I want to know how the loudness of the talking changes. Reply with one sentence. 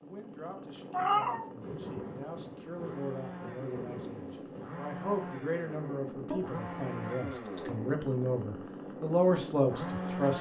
The loudness of the talking goes up.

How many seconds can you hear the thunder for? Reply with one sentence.
You can hear the thunder for 3 seconds altogether.